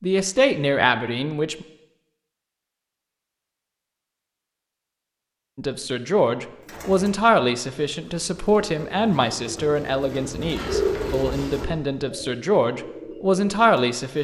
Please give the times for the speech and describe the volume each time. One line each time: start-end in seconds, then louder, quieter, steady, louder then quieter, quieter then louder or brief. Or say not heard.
0.0-1.6 brief
5.5-14.2 quieter then louder.